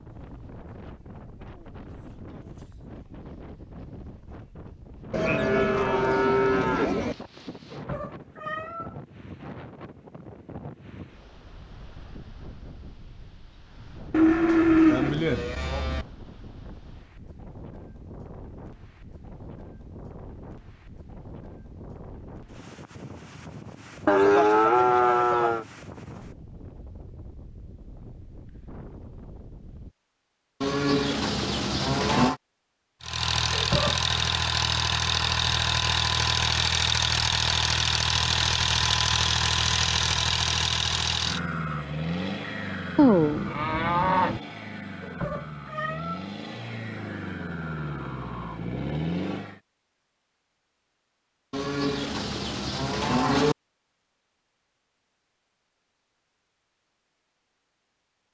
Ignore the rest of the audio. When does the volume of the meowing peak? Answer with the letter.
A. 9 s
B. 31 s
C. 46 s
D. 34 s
D.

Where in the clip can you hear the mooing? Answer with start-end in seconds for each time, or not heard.
5.1-7.2, 14.1-16.1, 24.1-25.6, 30.6-32.4, 43.0-44.4, 51.5-53.5.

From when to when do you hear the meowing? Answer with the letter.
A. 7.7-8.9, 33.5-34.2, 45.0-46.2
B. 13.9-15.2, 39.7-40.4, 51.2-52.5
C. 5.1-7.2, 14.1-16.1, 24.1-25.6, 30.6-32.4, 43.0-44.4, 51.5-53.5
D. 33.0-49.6
A.